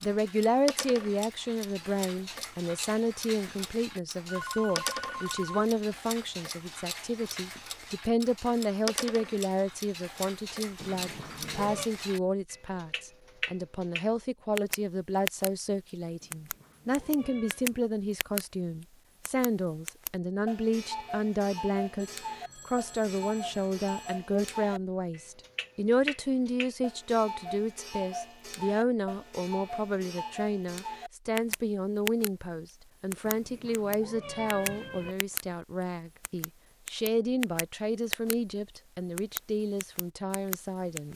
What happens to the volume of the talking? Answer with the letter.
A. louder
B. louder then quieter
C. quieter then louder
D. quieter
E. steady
E.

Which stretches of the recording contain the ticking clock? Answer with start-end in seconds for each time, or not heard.
0.0-18.4, 19.2-32.3, 33.1-35.5, 36.2-38.4, 39.1-41.1.